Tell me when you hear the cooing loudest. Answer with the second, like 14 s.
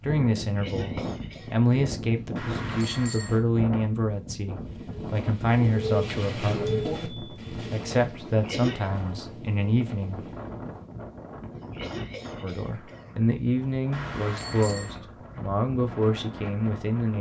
7 s.